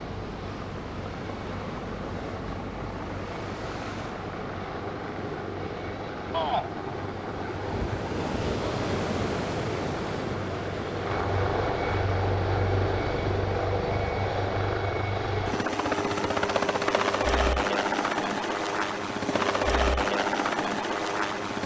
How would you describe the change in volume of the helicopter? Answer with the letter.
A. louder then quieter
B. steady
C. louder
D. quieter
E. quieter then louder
C.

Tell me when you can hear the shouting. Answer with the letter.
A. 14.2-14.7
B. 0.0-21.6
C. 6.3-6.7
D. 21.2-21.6
C.